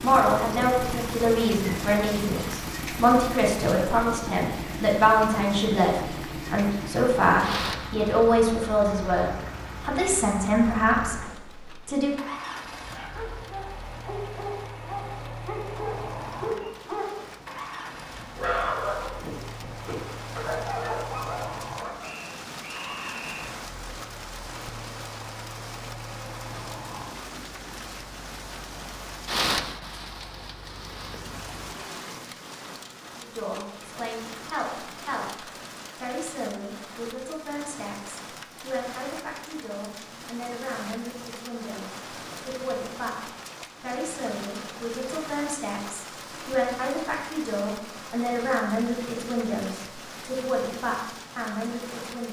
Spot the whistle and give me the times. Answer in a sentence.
The whistle can be heard from 22.0 to 23.6 s.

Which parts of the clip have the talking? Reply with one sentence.
You can hear the talking from 0.0 to 12.2 s and from 33.2 to 52.2 s.